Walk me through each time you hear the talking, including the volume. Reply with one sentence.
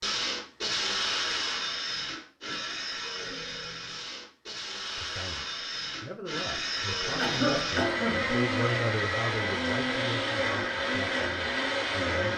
The talking can be heard from 5.0 to 12.3 s, getting louder then quieter.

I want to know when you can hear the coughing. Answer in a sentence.
The coughing can be heard from 7.2 to 8.3 s.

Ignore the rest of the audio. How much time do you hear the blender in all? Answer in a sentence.
The blender can be heard for 12 seconds in total.